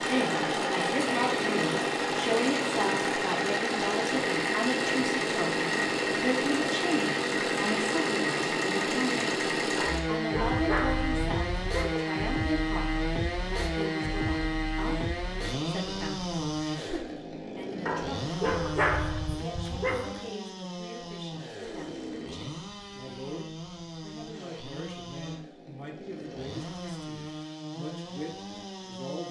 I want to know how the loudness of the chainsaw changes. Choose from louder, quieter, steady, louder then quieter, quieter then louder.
quieter.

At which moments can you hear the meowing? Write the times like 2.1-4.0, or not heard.
not heard.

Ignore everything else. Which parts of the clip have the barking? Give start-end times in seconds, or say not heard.
9.8-11.9, 17.9-20.2.